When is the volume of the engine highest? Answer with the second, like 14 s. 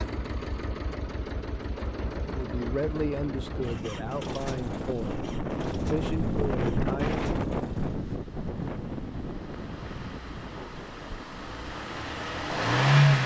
13 s.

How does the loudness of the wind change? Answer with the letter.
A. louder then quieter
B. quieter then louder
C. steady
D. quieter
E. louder
A.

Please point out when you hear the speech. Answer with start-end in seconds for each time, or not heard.
2.2-7.2.